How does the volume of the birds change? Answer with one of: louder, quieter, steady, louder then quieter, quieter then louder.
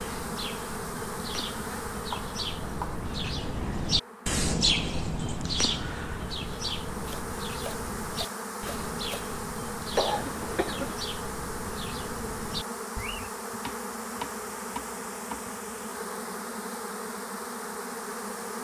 louder then quieter.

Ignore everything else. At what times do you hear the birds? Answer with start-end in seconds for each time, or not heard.
0.0-13.3.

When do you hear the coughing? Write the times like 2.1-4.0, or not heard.
9.9-10.9.